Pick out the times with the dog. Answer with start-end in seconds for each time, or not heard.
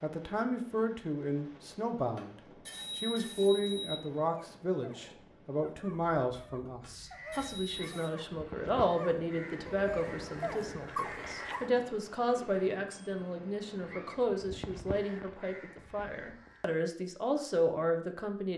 4.2-11.7.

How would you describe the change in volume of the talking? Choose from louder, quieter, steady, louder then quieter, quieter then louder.
steady.